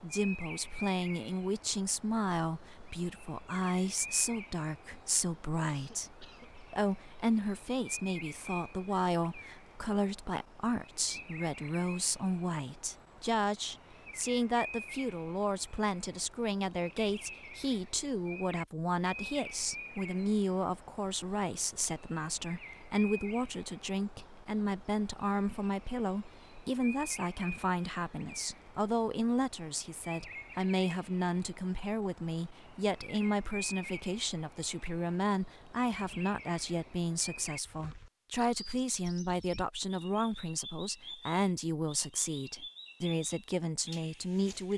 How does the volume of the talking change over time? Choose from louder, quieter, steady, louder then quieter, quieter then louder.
steady.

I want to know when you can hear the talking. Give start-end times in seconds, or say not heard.
0.0-44.7.